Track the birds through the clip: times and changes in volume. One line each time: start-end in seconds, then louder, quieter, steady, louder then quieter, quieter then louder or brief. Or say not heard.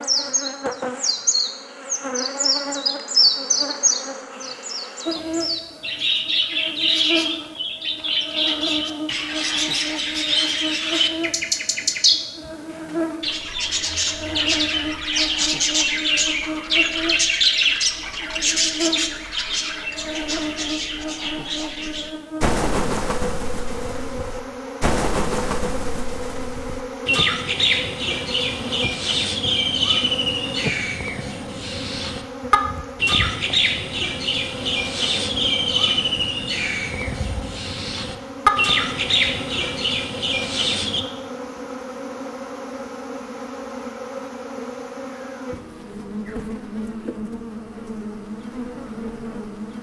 0.0-41.0 steady.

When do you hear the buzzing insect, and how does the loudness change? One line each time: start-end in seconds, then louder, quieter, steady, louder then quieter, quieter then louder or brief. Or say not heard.
0.0-49.7 steady.